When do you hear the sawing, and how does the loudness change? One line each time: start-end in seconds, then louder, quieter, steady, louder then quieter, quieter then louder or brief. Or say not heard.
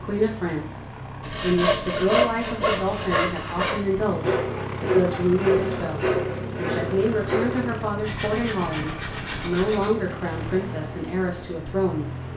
1.2-9.9 quieter.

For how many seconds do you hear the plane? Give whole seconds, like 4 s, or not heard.
12 s.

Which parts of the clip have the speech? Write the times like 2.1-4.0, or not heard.
0.0-12.2.